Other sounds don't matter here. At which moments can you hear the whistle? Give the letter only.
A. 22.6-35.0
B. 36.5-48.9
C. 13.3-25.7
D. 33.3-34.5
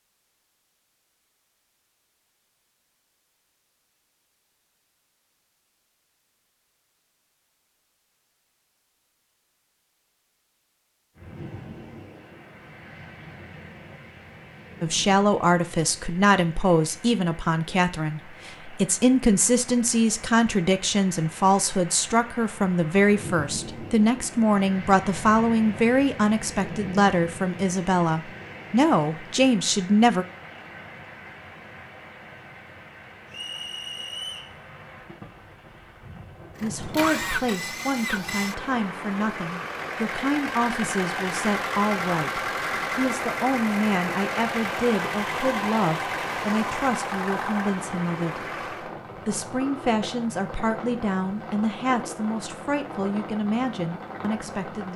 D.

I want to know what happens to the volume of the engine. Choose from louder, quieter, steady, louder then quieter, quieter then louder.
steady.